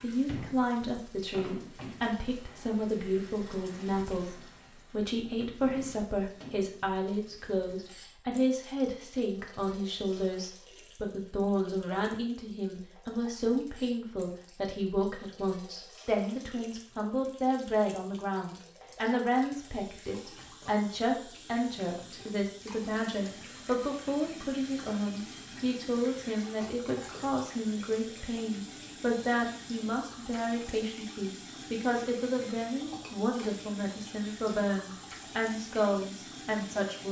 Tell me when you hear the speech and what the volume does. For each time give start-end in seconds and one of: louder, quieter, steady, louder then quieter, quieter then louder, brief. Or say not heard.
0.0-37.0 steady.